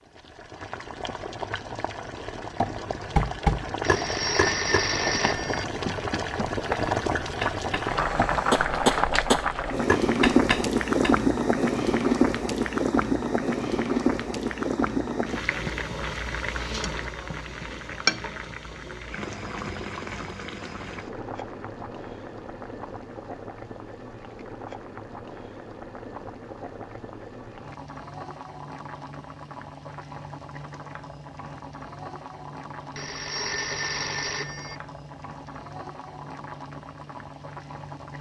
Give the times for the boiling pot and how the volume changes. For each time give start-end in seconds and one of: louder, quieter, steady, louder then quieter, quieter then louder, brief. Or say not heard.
0.0-38.1 louder then quieter.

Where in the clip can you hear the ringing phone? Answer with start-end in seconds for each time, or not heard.
3.8-5.7, 33.0-34.8.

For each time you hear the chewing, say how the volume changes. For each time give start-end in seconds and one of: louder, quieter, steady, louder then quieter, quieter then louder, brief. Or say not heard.
not heard.